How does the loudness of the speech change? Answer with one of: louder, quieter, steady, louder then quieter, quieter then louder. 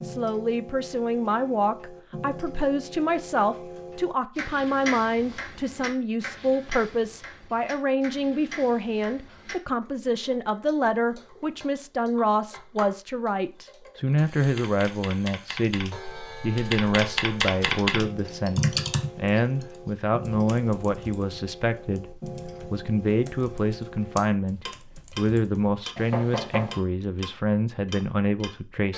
steady.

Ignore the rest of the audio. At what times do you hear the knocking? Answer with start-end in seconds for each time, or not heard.
25.9-26.8.